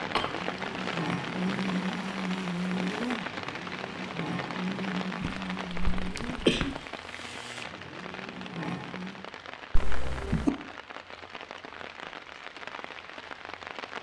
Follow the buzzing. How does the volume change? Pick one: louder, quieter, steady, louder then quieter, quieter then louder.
quieter.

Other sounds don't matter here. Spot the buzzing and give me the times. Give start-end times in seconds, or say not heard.
0.0-9.2.